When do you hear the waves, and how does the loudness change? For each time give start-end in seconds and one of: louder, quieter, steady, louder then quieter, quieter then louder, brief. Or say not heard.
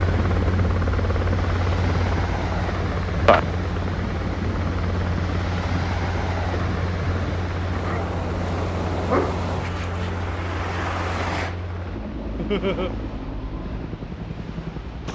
0.0-15.1 quieter.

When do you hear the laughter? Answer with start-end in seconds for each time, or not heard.
12.3-12.9.